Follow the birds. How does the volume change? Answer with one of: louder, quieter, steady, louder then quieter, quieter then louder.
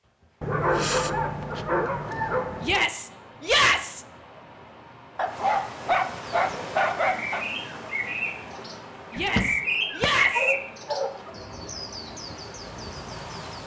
louder then quieter.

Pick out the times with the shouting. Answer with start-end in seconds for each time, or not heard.
2.6-4.0, 9.1-10.6.